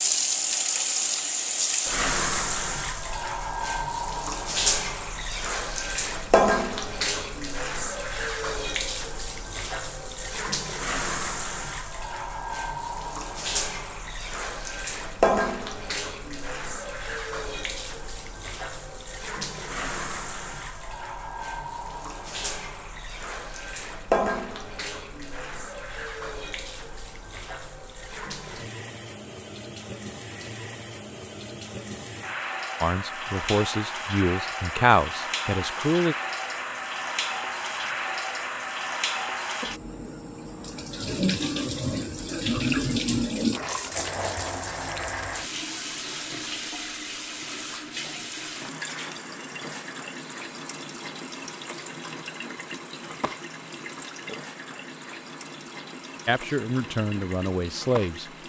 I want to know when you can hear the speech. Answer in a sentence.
The speech can be heard from 32.8 to 36.1 s and from 56.2 to 58.3 s.